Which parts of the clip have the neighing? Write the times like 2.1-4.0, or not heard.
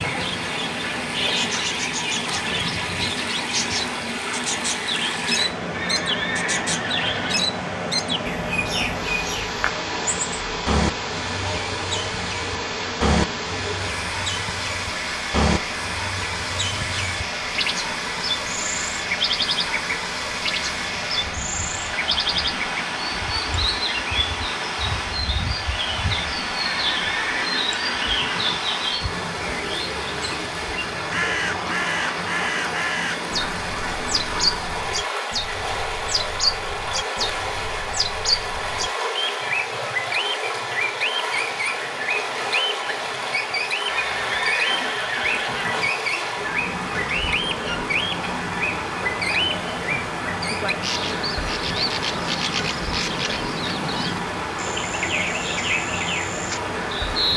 5.7-7.5, 26.6-28.6, 43.9-45.9.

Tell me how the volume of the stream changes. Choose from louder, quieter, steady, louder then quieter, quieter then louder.
steady.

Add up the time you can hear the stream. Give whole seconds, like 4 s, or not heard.
57 s.